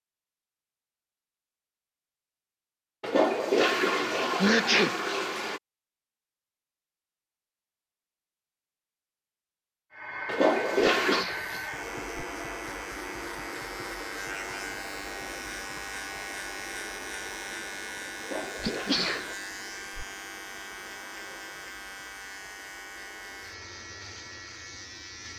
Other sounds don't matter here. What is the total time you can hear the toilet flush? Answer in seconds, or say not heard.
5 s.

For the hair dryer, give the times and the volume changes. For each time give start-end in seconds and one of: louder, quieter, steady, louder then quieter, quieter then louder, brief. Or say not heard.
9.9-25.3 quieter.